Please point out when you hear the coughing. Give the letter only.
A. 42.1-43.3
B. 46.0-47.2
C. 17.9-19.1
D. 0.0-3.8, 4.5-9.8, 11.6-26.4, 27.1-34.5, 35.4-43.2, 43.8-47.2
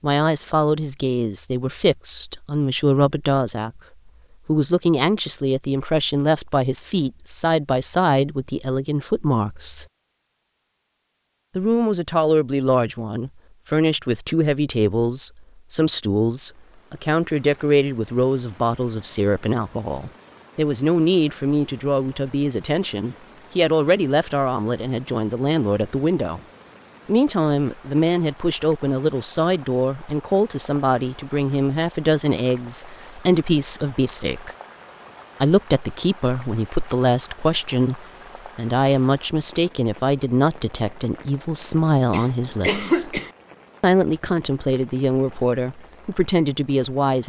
A.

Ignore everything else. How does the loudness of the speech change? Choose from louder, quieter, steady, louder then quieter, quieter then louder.
steady.